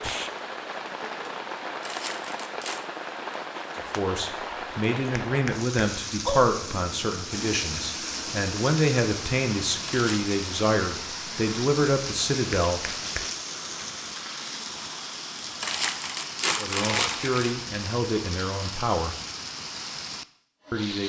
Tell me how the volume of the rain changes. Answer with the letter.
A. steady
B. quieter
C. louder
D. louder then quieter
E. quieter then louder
A.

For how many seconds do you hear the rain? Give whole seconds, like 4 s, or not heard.
21 s.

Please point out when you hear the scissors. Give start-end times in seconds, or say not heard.
not heard.